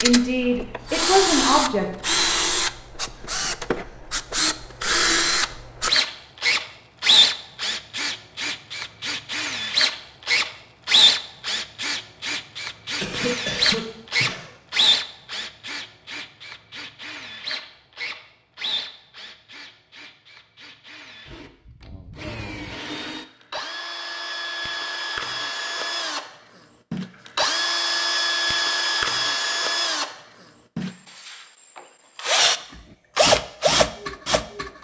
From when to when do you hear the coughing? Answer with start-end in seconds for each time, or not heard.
13.0-14.5.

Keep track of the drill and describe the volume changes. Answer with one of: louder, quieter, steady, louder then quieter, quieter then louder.
quieter then louder.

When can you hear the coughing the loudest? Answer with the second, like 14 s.
13 s.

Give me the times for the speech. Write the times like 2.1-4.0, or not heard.
0.0-1.9.